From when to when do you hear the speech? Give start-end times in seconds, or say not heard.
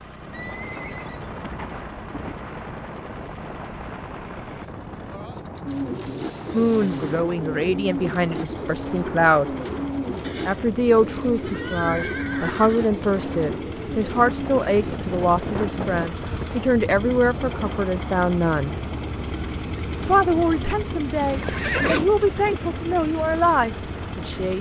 6.5-9.5, 10.4-18.8, 20.1-24.5.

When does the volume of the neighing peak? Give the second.
22 s.